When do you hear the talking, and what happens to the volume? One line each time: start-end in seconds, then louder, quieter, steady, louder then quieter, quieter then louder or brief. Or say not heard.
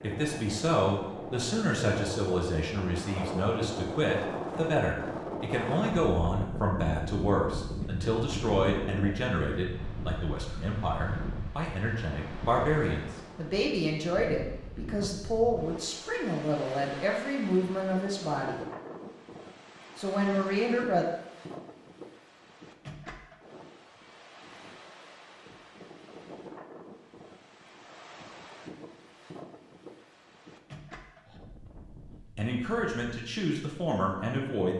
0.0-18.6 steady
19.9-21.1 brief
32.4-34.7 brief.